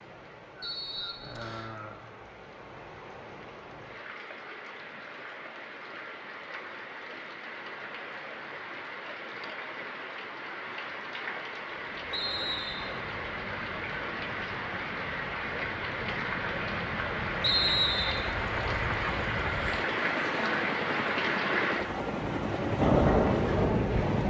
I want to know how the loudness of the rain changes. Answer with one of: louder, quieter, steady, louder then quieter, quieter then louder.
louder.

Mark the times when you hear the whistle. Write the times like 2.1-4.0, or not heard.
0.6-1.8, 12.1-13.0, 17.4-18.3.